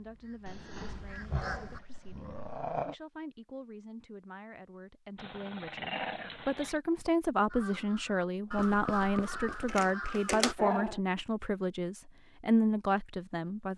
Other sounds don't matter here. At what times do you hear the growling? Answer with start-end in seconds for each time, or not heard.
0.5-3.0, 5.2-6.8, 10.2-11.0.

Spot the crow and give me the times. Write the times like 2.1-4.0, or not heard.
0.0-1.8, 7.5-10.6.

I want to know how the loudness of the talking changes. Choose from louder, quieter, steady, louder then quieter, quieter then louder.
louder.